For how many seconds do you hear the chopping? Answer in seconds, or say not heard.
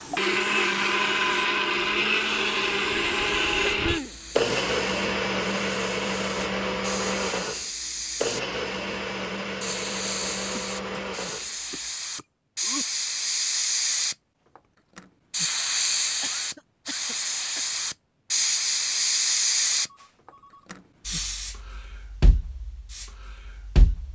not heard.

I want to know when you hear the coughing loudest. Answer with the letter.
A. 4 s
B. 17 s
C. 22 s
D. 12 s
A.